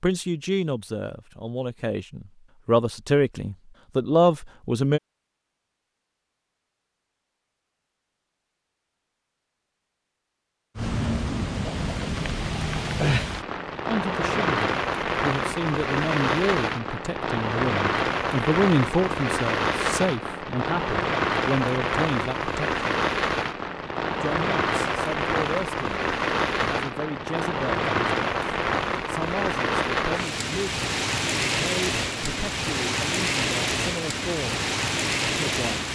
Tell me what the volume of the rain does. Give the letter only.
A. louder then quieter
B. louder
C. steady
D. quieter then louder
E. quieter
C.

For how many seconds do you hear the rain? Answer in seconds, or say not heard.
25 s.